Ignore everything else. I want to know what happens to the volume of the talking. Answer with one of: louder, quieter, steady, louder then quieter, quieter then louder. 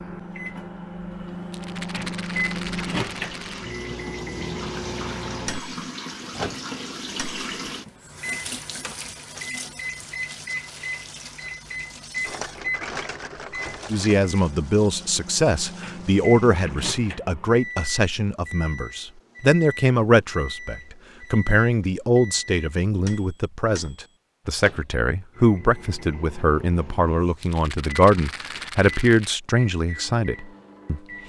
steady.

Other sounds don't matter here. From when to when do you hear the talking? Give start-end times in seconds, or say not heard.
13.9-31.0.